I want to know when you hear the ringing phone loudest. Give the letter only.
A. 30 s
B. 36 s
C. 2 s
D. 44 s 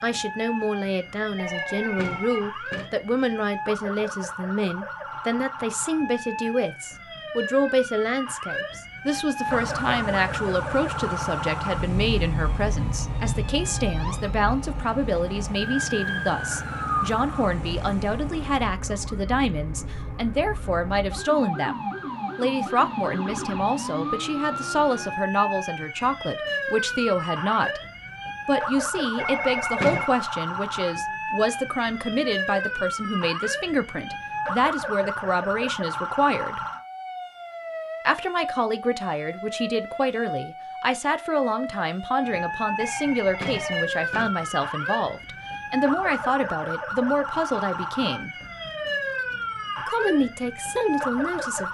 A.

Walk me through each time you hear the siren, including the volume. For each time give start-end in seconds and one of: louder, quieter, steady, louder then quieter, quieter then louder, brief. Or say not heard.
0.0-51.6 steady.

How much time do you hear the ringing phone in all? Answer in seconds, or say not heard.
4 s.